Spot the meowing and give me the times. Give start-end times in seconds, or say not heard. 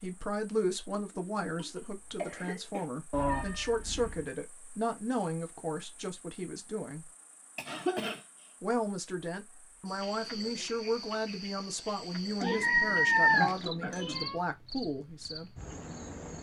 3.1-4.2, 12.4-14.4.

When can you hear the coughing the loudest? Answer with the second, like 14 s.
8 s.